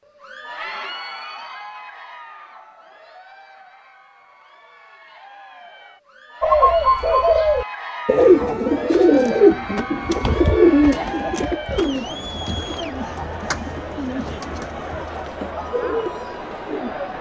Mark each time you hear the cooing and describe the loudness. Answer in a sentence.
You can hear the cooing from 6.4 to 16.9 s, getting quieter.